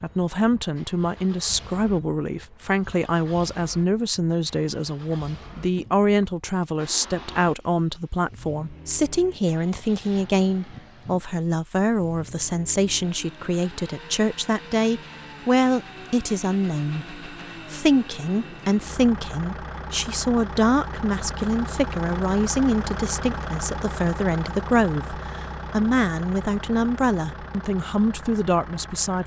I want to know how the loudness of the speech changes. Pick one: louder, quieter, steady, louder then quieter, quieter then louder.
steady.